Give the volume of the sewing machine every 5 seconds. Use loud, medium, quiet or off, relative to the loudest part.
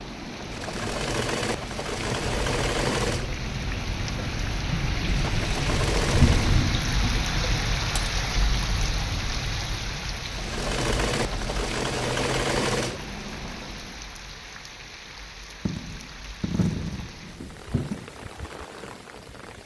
loud, loud, loud, off.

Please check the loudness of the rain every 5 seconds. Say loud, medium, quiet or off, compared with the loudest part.
medium, loud, medium, quiet.